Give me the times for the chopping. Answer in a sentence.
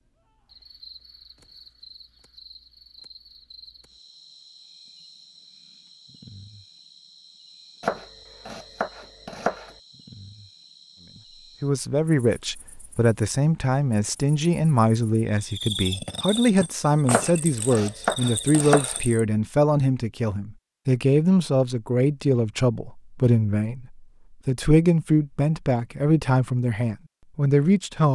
You can hear the chopping from 7.8 to 9.8 s and from 17.1 to 19.0 s.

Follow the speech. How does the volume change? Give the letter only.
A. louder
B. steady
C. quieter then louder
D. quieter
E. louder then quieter
B.